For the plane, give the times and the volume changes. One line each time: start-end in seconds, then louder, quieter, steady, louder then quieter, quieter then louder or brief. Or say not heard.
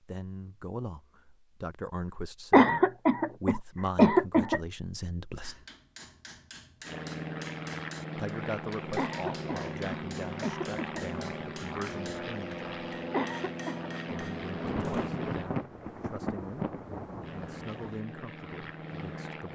6.8-15.5 steady
17.2-19.4 brief.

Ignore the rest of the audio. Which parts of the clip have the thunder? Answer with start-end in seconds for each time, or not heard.
14.4-17.9.